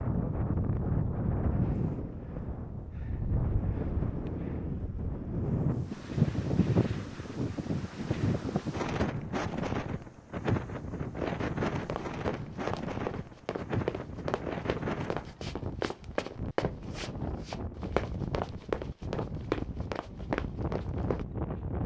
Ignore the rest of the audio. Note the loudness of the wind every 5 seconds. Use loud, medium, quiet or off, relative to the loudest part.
loud, loud, loud, medium, medium.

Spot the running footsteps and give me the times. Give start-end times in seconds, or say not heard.
11.8-21.2.